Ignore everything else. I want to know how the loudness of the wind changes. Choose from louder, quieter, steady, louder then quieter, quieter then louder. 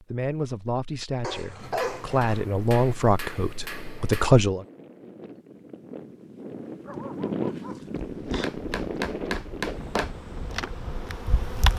louder then quieter.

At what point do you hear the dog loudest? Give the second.
2 s.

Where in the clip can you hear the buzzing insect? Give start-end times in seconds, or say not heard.
7.9-11.7.